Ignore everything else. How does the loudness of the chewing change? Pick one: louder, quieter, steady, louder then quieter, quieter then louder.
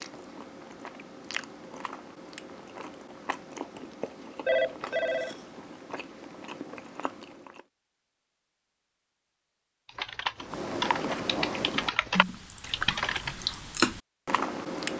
louder.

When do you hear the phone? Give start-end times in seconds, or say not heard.
4.5-5.3.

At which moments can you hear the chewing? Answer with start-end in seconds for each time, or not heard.
0.0-7.7, 10.4-14.9.